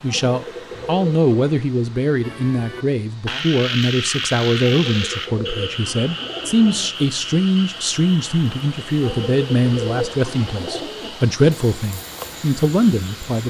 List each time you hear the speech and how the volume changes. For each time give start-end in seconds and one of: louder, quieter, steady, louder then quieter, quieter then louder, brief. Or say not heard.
0.0-13.4 steady.